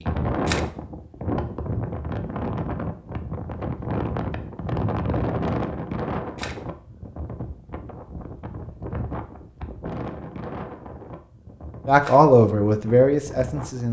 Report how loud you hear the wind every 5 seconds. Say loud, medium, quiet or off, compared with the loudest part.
loud, loud, medium.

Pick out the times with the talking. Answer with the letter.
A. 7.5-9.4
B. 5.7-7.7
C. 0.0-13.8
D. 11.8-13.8
D.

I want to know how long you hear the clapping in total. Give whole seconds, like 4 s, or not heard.
not heard.